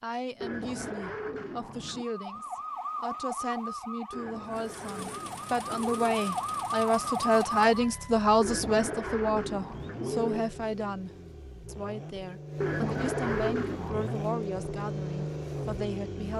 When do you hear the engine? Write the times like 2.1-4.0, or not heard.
4.5-16.3.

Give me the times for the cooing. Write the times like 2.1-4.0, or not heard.
0.4-2.0, 4.1-6.2, 8.4-10.4, 12.6-14.2.